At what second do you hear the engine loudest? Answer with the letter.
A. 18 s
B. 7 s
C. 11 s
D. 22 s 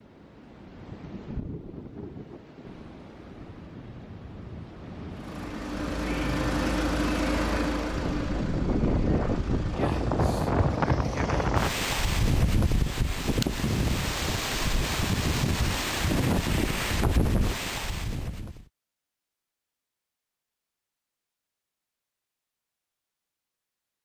B.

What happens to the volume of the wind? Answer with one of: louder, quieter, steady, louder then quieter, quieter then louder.
louder.